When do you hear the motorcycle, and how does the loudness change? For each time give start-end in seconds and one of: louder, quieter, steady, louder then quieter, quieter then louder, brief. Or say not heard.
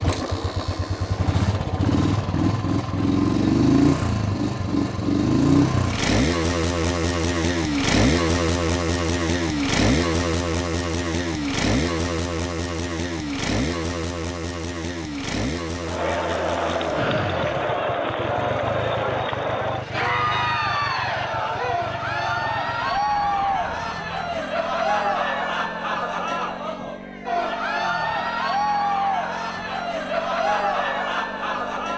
0.0-31.9 quieter.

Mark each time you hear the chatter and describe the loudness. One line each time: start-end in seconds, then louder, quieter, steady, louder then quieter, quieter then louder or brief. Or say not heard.
15.8-31.9 steady.